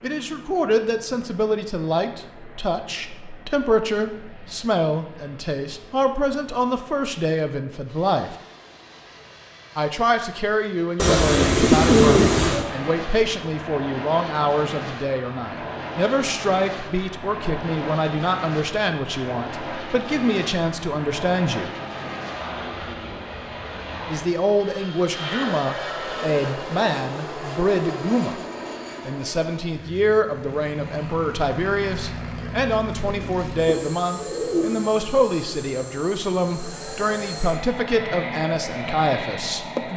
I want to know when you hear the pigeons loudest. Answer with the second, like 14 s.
12 s.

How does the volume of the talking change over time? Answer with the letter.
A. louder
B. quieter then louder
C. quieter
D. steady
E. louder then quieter
D.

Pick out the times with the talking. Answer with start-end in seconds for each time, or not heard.
0.0-8.3, 9.8-21.8, 24.1-28.4, 29.1-39.9.